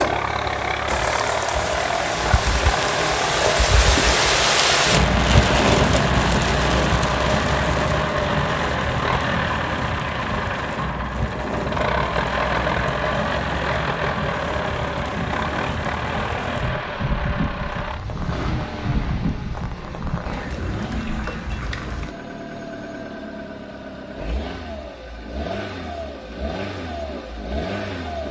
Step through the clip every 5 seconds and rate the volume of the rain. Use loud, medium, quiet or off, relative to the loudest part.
loud, loud, medium, medium, medium, off.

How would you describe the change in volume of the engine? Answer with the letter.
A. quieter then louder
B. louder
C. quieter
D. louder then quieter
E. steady
C.